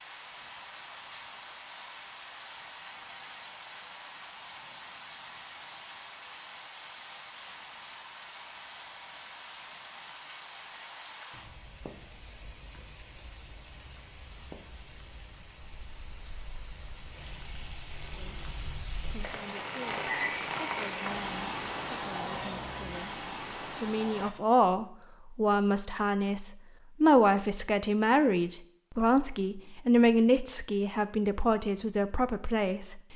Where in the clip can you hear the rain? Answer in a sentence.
The rain can be heard from 0.0 to 24.3 s.